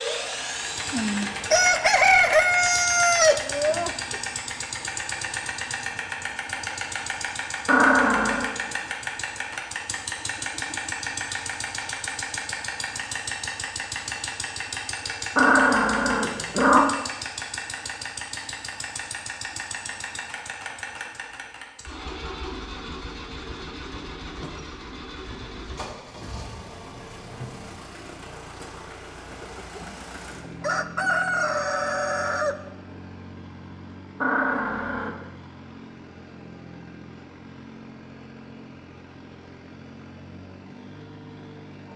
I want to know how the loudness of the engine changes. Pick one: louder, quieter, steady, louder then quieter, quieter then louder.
quieter.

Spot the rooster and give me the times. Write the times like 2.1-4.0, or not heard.
0.9-4.2, 29.3-32.5.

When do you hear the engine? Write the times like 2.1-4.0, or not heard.
0.0-41.9.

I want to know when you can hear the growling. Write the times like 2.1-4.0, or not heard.
7.7-8.5, 15.3-16.9, 34.2-35.1.